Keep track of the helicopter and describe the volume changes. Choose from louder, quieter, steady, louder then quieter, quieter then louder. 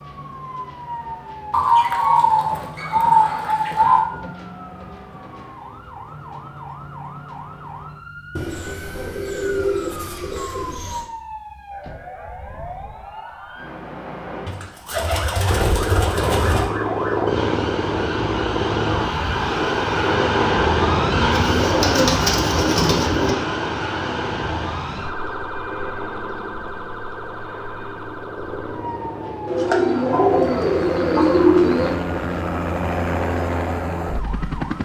quieter then louder.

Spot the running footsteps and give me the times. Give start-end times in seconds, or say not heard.
not heard.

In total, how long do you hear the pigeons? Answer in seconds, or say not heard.
12 s.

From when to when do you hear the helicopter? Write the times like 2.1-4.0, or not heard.
15.4-34.8.